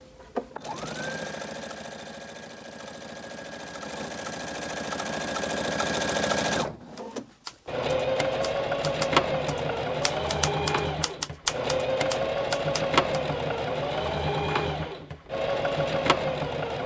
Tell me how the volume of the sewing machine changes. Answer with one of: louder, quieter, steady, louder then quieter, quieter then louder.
louder.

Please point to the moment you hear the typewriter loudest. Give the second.
11 s.